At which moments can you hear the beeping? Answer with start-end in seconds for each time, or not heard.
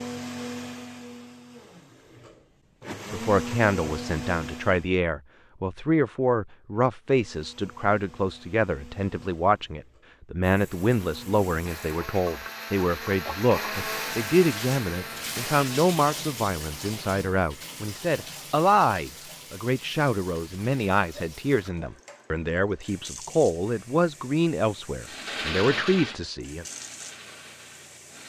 not heard.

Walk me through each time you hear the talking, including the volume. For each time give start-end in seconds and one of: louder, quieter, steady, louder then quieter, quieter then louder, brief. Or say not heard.
3.1-26.6 steady.